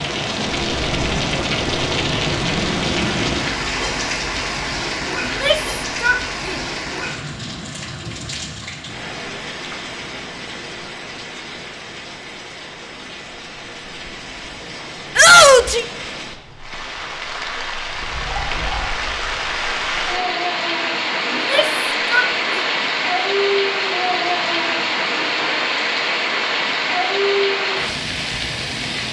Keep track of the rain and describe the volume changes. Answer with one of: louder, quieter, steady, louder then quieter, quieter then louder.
quieter then louder.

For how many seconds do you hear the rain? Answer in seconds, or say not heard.
29 s.